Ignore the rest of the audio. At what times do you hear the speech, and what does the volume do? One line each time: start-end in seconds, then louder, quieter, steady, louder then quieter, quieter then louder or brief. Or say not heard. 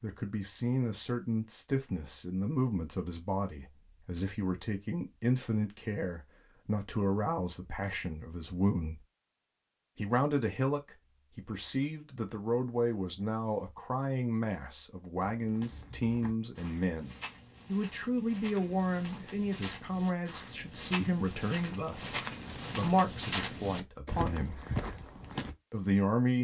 0.0-9.0 steady
9.9-24.6 steady
25.7-26.3 brief.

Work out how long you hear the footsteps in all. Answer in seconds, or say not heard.
10 s.